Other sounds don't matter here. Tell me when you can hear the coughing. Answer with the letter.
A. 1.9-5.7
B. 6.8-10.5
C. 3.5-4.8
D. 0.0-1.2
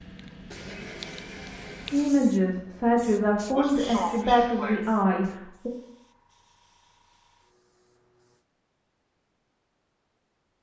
C.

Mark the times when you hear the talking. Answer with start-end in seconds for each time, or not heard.
1.9-5.7.